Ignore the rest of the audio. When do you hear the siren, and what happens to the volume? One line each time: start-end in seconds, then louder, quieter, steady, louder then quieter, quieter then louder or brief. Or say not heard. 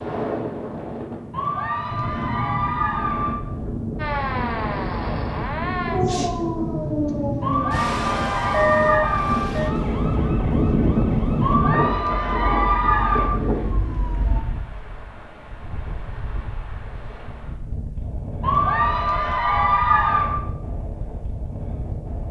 4.0-14.4 quieter.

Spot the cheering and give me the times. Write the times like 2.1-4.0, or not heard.
1.3-3.4, 7.4-9.4, 11.4-13.3, 18.4-20.4.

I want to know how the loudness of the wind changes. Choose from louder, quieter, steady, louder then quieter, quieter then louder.
louder then quieter.